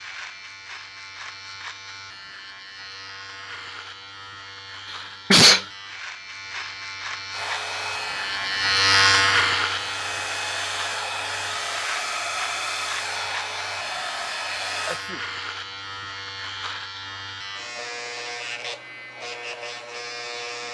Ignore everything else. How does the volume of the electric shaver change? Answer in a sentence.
The volume of the electric shaver goes up, then down.